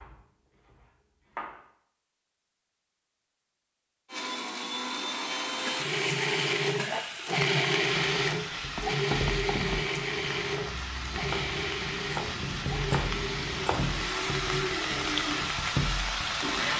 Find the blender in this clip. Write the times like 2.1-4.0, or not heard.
4.1-16.7.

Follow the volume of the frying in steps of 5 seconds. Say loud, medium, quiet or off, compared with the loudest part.
off, medium, medium, loud.